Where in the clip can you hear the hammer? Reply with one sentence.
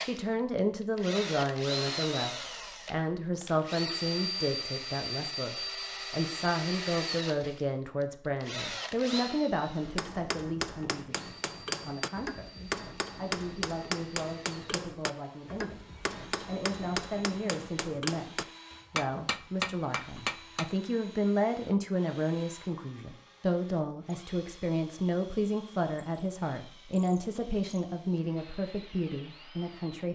The hammer can be heard from 9.8 to 20.7 s.